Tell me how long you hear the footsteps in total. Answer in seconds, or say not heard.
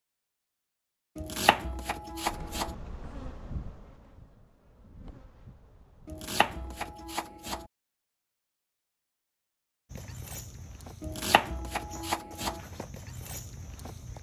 4 s.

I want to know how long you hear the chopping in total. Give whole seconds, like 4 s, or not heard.
5 s.